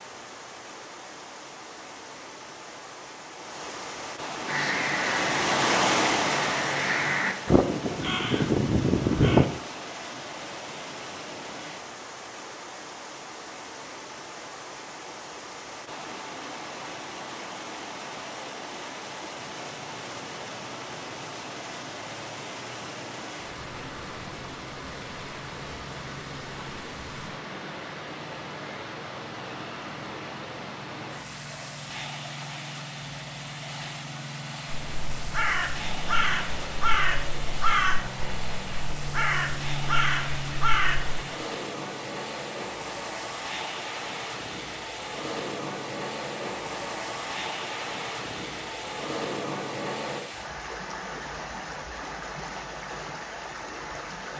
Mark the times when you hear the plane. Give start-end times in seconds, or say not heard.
19.4-50.2.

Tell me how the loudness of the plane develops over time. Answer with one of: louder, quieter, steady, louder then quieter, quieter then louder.
louder.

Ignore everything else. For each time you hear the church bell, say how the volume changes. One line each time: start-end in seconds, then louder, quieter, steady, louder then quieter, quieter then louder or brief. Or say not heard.
not heard.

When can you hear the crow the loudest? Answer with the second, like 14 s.
9 s.